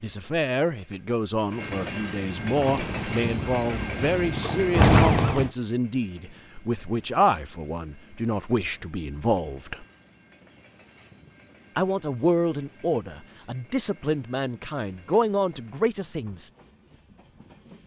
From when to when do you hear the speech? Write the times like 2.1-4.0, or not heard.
0.0-9.8, 11.8-16.5.